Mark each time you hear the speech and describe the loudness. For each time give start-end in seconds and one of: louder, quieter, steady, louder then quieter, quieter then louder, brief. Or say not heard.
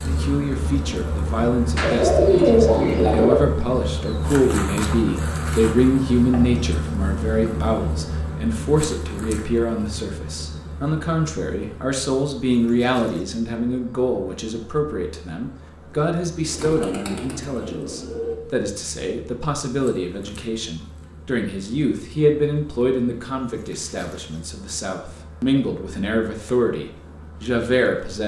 0.0-28.2 steady.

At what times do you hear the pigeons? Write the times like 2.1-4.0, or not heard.
1.8-3.5, 16.4-18.4.